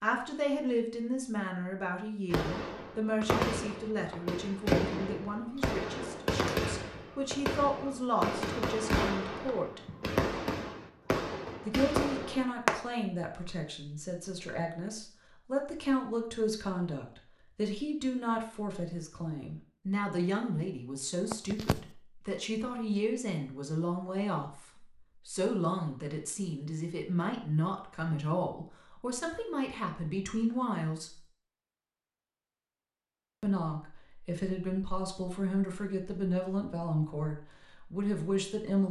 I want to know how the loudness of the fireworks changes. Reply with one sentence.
The loudness of the fireworks stays about the same.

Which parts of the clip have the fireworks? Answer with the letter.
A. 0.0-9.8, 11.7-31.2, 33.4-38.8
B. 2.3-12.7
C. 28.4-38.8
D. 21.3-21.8
B.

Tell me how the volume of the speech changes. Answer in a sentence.
The loudness of the speech stays about the same.